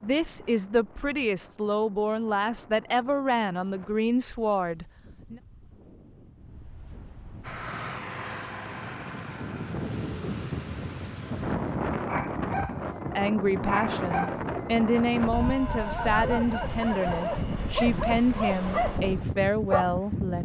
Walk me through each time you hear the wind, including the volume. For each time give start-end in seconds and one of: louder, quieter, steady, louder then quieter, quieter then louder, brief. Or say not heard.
0.0-20.3 louder.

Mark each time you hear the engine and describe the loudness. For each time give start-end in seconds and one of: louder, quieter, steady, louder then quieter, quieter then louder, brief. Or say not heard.
7.4-11.8 quieter.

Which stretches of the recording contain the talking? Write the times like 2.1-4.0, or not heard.
0.0-5.4, 13.1-20.3.